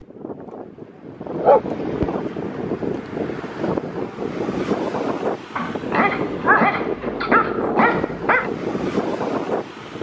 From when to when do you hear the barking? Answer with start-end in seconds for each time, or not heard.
1.4-2.0, 5.5-8.5.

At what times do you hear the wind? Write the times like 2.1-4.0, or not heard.
0.0-9.9.